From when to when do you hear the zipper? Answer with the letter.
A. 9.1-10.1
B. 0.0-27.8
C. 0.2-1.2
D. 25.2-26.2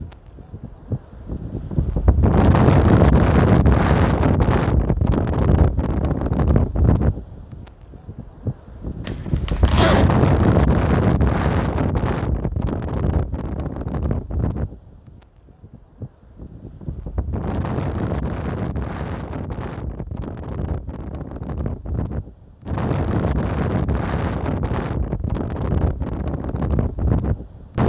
A.